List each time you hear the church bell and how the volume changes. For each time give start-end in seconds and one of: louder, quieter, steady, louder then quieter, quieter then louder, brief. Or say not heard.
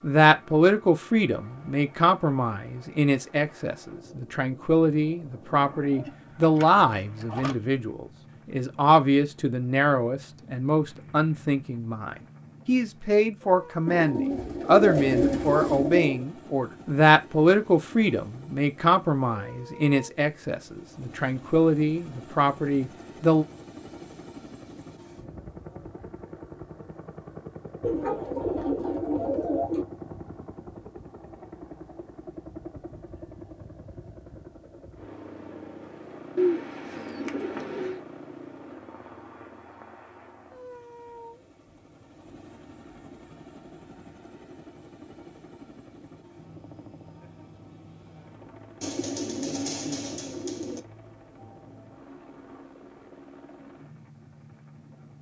not heard.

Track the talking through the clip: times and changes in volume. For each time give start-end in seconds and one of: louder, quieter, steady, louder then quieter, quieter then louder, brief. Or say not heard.
0.0-23.4 steady.